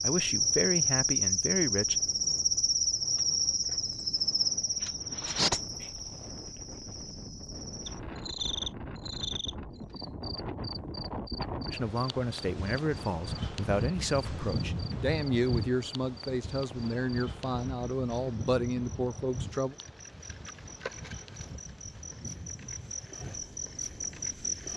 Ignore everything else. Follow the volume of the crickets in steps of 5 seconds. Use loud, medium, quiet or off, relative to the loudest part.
loud, medium, quiet, quiet, quiet.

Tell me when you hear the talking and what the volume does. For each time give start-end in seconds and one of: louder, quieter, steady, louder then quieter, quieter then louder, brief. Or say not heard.
0.0-2.0 brief
11.7-19.8 steady.